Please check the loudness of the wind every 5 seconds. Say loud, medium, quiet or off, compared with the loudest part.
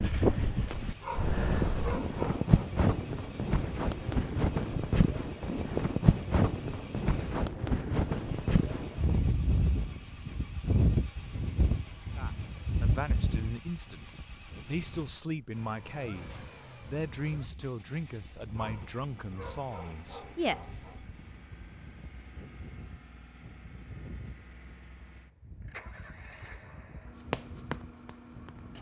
loud, loud, medium, quiet, quiet, quiet.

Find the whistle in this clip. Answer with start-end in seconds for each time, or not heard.
not heard.